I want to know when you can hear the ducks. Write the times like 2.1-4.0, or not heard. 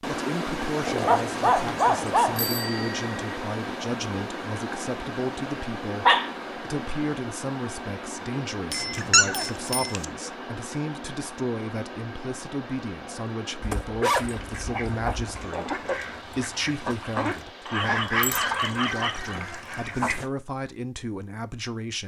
14.2-20.3.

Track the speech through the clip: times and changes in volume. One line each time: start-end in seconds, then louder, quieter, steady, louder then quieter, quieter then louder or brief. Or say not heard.
0.1-22.0 steady.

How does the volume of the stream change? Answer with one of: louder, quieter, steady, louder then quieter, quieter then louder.
quieter.